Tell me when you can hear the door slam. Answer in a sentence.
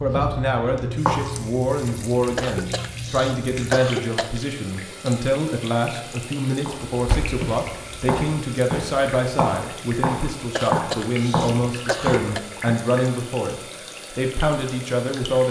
You can hear the door slam from 7.0 to 7.5 s.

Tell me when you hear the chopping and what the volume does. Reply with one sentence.
You can hear the chopping briefly from 0.0 to 1.5 s; and from 6.7 to 12.8 s, getting louder.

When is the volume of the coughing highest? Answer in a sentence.
The volume of the coughing peaks at 4 seconds.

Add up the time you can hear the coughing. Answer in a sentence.
The coughing can be heard for 4 seconds in total.